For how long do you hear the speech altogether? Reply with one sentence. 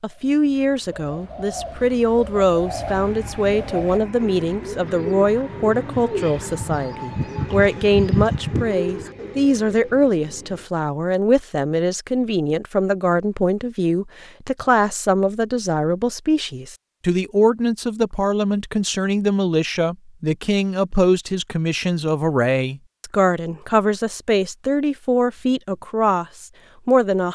The speech can be heard for 27 seconds in total.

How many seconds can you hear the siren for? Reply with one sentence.
You can't hear the siren here.